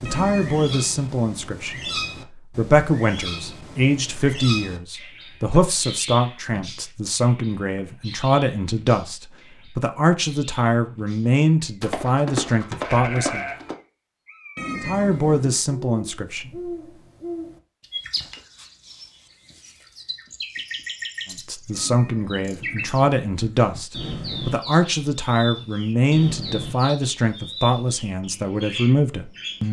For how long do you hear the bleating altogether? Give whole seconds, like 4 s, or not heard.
2 s.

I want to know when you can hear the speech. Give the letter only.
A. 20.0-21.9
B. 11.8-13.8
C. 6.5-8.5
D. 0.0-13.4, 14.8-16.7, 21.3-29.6
D.